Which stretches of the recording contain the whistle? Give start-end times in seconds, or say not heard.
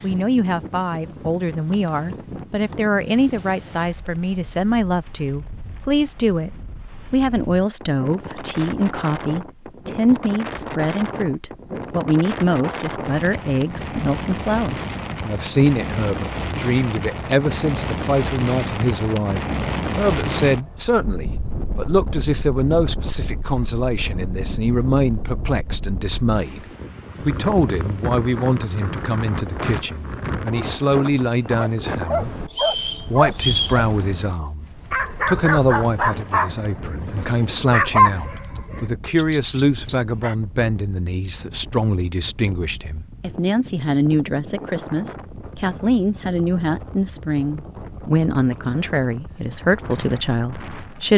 32.5-33.8.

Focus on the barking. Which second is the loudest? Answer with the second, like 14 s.
38 s.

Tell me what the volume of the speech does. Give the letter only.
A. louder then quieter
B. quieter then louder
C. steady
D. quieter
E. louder
C.